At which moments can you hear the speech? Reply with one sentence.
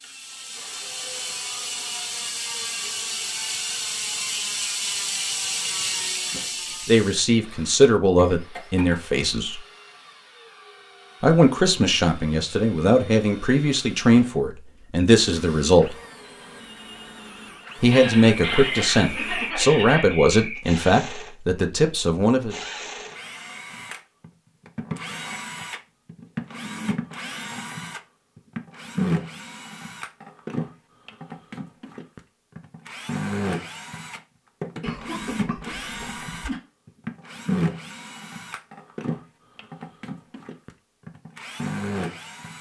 The speech can be heard from 6.8 to 9.6 s, from 11.2 to 15.9 s and from 17.8 to 22.6 s.